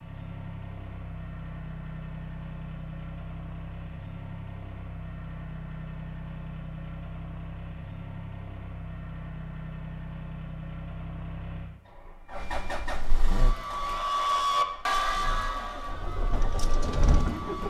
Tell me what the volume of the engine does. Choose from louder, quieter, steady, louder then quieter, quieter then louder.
steady.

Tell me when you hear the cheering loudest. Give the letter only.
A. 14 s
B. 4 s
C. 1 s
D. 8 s
A.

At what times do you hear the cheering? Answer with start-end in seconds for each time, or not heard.
13.3-17.6.